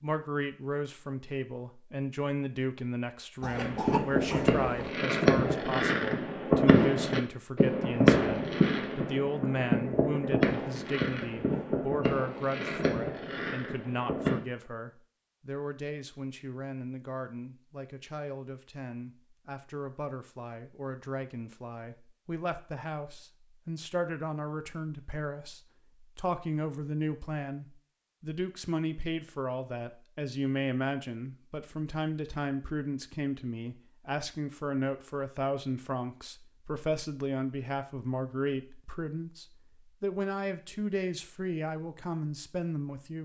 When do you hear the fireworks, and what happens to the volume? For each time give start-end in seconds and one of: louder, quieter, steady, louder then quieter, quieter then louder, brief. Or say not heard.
3.5-14.4 quieter.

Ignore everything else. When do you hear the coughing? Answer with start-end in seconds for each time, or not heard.
3.4-4.9.